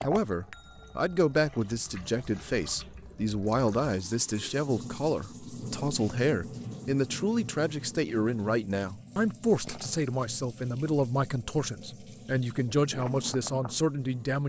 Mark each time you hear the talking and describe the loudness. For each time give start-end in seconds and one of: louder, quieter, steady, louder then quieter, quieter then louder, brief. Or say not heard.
0.0-14.4 steady.